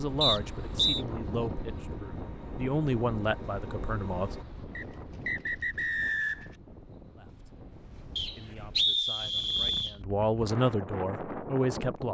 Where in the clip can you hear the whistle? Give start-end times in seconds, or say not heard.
0.2-1.1, 4.8-6.5, 8.2-9.9.